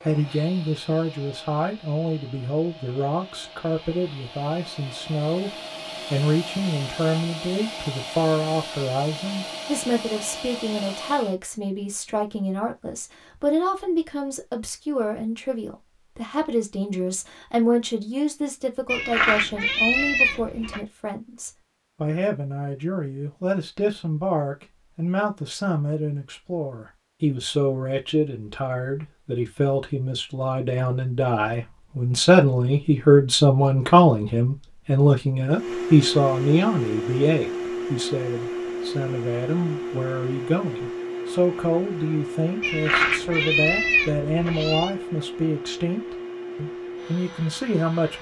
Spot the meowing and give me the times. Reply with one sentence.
The meowing can be heard from 18.9 to 20.8 s and from 42.6 to 45.0 s.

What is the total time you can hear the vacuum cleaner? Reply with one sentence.
You can hear the vacuum cleaner for 24 seconds altogether.